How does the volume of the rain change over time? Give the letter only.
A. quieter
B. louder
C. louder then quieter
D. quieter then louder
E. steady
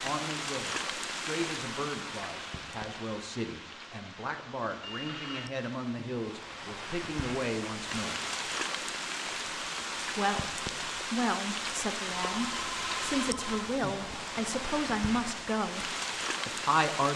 D.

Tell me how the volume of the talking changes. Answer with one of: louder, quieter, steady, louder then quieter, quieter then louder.
louder.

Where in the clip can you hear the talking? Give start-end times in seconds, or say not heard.
0.0-8.2, 10.2-17.1.